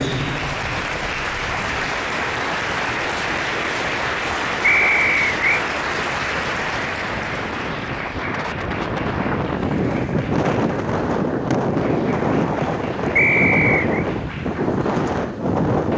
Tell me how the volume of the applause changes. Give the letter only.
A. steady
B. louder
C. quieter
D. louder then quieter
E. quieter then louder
C.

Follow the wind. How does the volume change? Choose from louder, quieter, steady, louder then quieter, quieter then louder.
louder.